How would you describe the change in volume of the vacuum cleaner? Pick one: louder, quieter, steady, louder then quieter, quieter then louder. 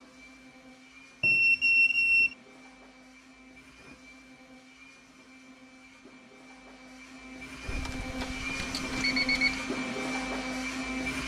louder.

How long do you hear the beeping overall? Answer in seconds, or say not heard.
3 s.